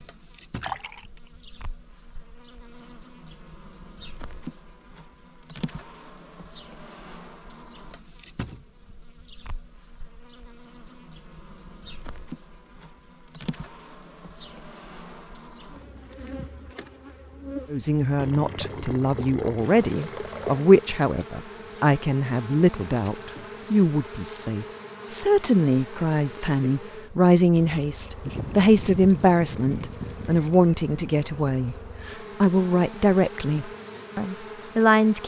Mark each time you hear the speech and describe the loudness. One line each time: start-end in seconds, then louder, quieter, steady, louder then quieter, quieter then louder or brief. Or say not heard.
17.7-35.2 steady.